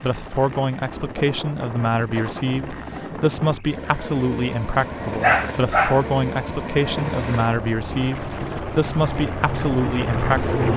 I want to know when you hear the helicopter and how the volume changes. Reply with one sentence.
The helicopter can be heard from 0.0 to 10.7 s, getting louder.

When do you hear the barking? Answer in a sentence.
You can hear the barking from 5.2 to 6.0 s.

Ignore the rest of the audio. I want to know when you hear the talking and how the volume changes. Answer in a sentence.
You can hear the talking from 0.0 to 10.6 s, at a steady volume.